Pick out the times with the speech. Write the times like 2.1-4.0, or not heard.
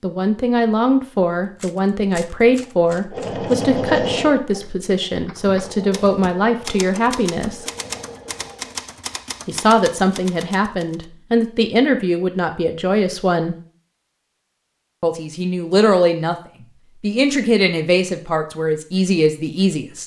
0.0-7.7, 9.4-13.6, 15.0-16.4, 17.0-20.0.